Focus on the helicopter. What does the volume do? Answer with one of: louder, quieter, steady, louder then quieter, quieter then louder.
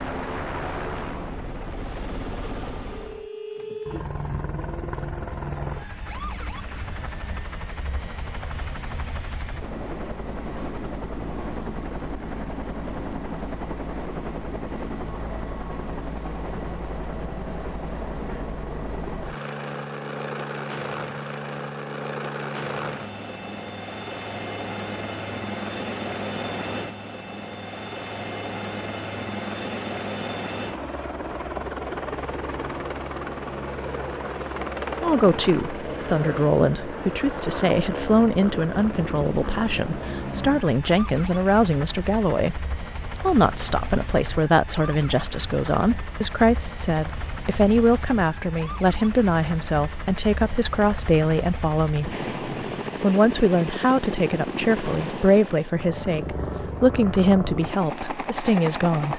steady.